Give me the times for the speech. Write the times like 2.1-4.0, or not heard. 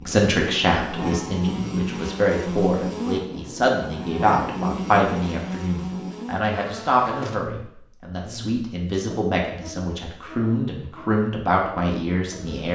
0.1-12.7.